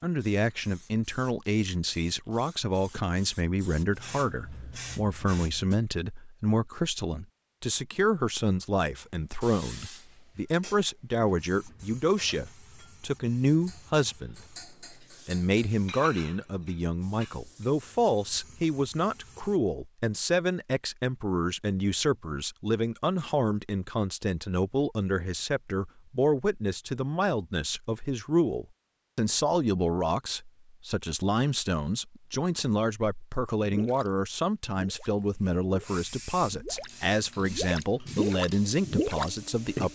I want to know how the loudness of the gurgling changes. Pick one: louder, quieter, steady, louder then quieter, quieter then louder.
louder.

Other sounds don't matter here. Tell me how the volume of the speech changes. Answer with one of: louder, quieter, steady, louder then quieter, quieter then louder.
steady.